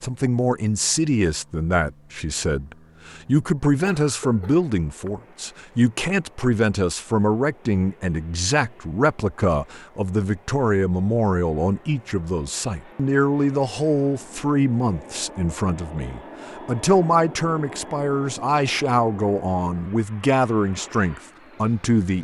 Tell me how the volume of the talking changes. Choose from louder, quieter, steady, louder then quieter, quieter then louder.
steady.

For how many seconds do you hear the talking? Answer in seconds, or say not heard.
22 s.